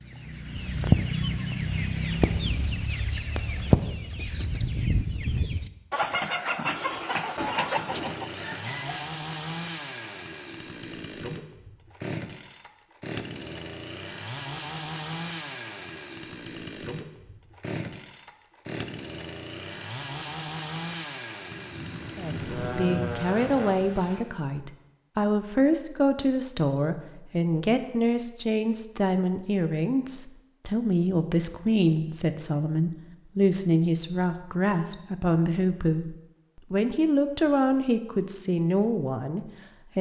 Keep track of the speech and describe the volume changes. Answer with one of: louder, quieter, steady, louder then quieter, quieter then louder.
steady.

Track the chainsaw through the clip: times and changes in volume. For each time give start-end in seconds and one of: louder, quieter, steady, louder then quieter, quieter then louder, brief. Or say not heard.
7.8-23.8 steady.